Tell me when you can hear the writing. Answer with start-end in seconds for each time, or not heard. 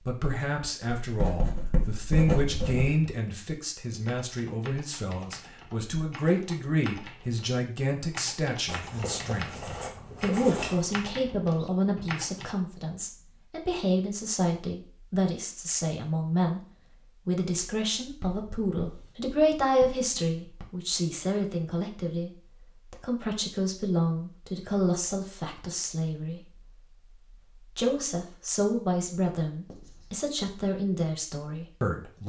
1.0-3.0, 8.7-11.0, 18.0-20.7, 29.6-30.3.